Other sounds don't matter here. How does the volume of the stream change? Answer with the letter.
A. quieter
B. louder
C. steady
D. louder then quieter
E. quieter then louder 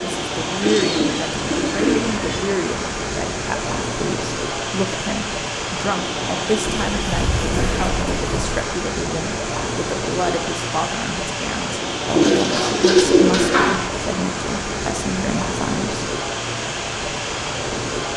C.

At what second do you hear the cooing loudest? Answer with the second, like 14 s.
13 s.